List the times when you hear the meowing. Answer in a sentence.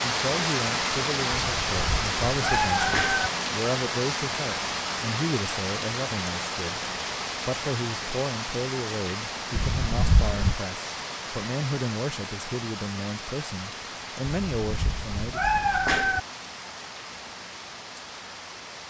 The meowing can be heard from 1.6 to 3.3 s, from 9.6 to 10.6 s and from 14.2 to 16.2 s.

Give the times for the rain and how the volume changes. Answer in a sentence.
The rain can be heard from 0.0 to 18.8 s, getting quieter.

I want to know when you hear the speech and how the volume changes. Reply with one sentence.
You can hear the speech from 0.0 to 15.4 s, at a steady volume.